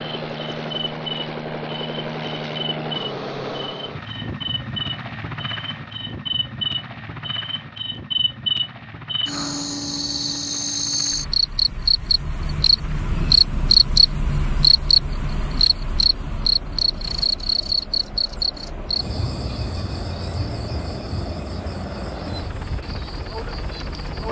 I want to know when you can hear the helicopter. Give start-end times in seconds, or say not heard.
0.0-24.2.